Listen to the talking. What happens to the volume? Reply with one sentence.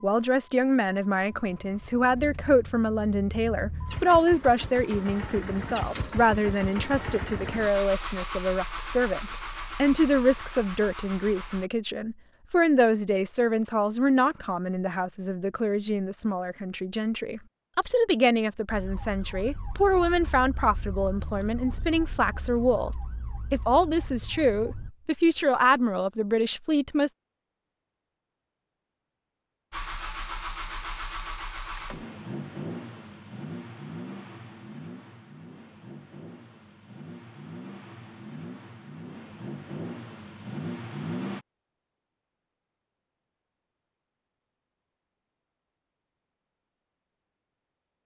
The loudness of the talking stays about the same.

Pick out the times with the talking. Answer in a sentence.
The talking can be heard from 0.0 to 27.1 s.